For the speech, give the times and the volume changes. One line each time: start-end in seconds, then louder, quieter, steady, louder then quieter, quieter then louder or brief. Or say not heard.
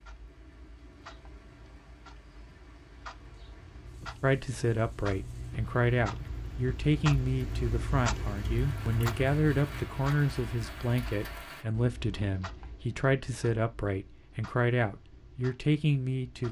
4.2-16.4 steady.